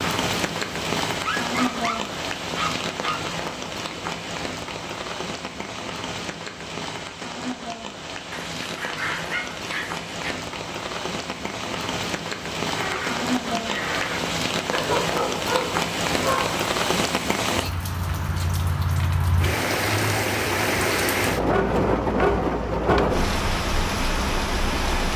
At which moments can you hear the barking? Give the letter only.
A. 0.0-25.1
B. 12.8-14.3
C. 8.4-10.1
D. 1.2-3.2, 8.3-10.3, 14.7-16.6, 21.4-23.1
D.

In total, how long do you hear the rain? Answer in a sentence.
You can hear the rain for 25 seconds altogether.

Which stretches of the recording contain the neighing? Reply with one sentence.
The neighing can be heard from 12.8 to 14.3 s.